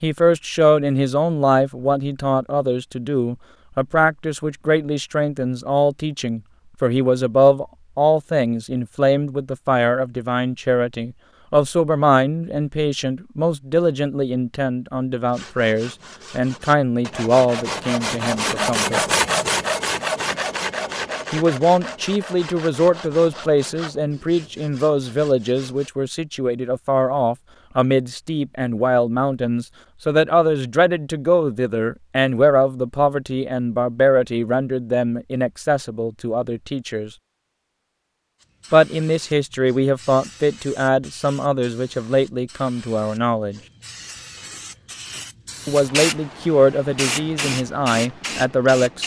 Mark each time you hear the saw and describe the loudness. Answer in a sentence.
You can hear the saw from 15.2 to 25.9 s, getting louder then quieter.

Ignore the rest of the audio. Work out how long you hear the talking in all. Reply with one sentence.
The talking can be heard for 43 seconds in total.